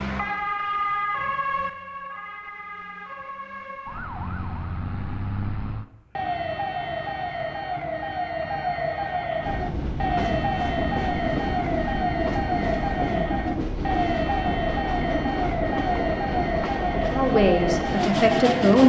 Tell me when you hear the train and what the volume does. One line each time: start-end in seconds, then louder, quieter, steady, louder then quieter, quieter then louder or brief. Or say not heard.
9.4-18.8 steady.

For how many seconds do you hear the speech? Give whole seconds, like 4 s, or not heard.
2 s.